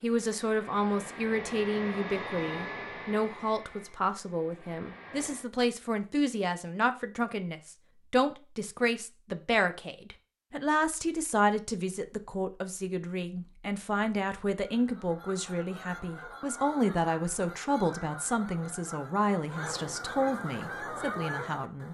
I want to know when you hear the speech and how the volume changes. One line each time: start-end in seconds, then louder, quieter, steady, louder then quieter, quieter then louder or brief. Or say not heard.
0.0-21.8 steady.